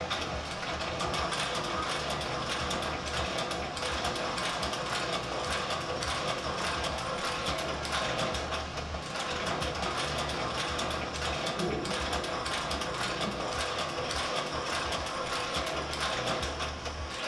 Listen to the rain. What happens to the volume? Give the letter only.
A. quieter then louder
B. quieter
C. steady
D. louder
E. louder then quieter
C.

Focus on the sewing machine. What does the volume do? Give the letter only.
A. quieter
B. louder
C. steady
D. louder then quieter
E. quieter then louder
C.